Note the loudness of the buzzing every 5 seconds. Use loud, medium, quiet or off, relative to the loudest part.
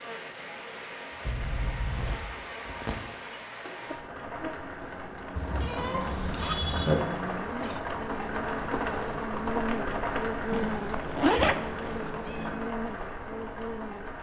medium, loud, loud.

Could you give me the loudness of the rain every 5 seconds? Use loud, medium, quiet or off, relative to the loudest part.
medium, loud, loud.